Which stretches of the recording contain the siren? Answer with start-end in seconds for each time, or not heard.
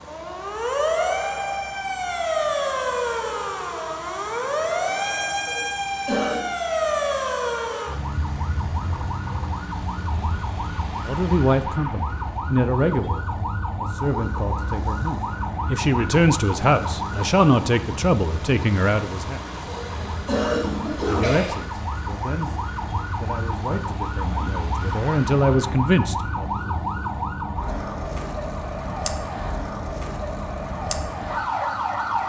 0.0-32.2.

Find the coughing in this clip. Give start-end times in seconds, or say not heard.
5.5-6.5, 19.6-21.6.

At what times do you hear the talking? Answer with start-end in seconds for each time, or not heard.
11.1-19.4, 21.1-26.4.